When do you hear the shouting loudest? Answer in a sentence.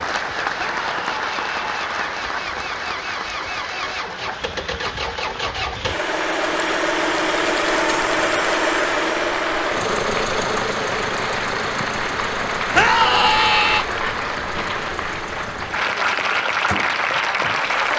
The loudest moment of the shouting is at 13 seconds.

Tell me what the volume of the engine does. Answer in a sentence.
The volume of the engine goes up, then down.